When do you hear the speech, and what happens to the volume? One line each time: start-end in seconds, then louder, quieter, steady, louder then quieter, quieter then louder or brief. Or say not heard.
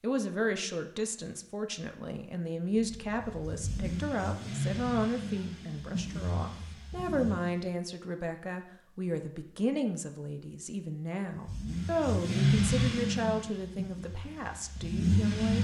0.0-15.5 steady.